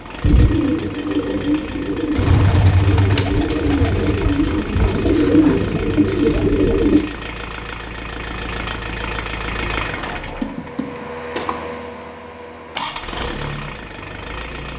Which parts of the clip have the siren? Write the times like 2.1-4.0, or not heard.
not heard.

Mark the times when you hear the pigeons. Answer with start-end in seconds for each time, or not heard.
0.2-7.0.